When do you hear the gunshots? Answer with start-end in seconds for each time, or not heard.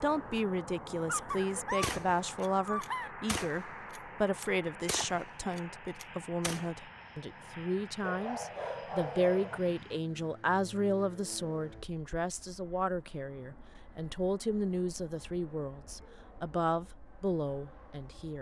1.8-6.7.